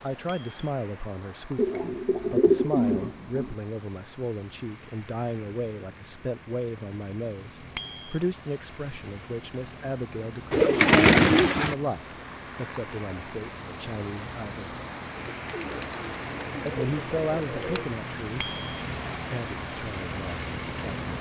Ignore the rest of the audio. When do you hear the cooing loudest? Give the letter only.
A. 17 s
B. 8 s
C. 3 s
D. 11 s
D.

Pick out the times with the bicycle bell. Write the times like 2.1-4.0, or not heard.
0.2-0.7, 7.8-8.2, 18.4-18.8.